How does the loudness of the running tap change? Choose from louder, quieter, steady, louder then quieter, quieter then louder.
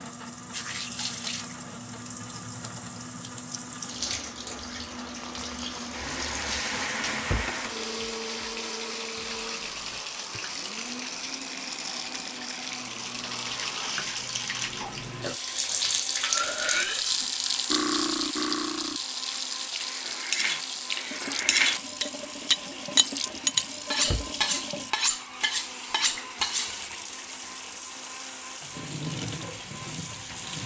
louder then quieter.